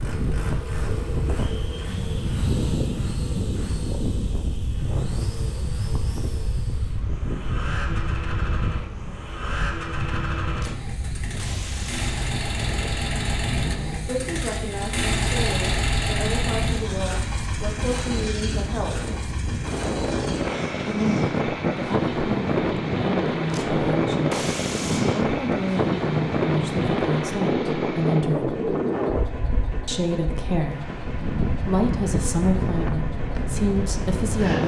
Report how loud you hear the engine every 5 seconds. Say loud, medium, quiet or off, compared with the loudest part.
medium, medium, loud, loud, medium, medium, medium.